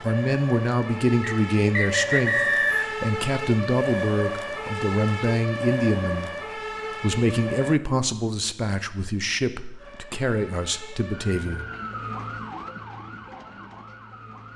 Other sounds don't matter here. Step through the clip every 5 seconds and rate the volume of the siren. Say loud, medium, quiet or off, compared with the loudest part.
loud, loud, medium.